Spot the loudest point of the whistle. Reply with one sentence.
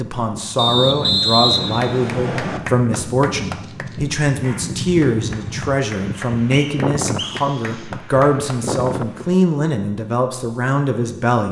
The loudest moment of the whistle is at 1 second.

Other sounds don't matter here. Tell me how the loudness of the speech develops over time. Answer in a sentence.
The volume of the speech stays about the same.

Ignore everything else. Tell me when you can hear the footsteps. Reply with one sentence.
You can't hear the footsteps here.